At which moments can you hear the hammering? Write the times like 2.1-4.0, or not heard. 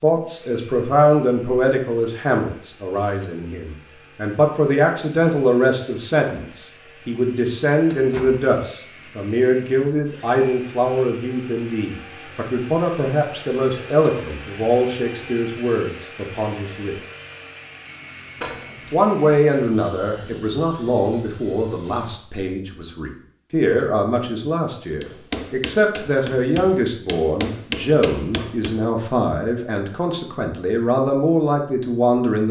25.0-28.8.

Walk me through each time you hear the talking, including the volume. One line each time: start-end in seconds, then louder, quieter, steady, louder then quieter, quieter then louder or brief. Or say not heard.
0.0-16.9 steady
18.9-32.4 steady.